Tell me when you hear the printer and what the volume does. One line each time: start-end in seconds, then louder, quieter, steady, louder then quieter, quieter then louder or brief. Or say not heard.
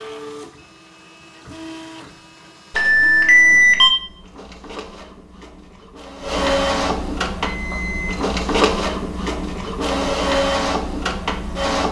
0.0-11.8 louder.